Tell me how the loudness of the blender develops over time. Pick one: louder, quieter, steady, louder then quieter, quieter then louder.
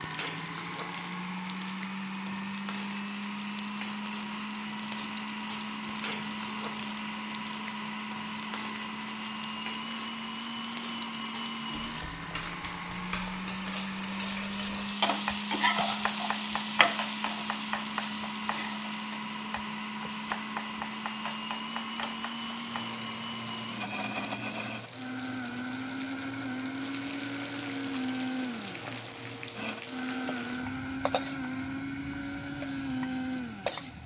steady.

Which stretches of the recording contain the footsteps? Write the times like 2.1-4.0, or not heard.
not heard.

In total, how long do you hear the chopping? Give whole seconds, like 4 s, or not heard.
8 s.